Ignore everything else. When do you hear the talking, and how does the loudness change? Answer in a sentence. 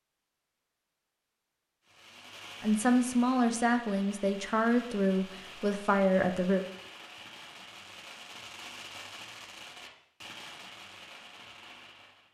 The talking can be heard from 2.6 to 6.7 s, at a steady volume.